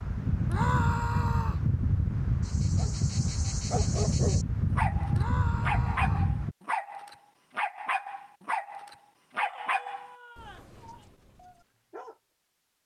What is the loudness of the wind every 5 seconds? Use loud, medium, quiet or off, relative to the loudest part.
loud, loud, off.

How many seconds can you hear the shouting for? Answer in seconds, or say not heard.
4 s.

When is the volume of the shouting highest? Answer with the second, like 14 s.
1 s.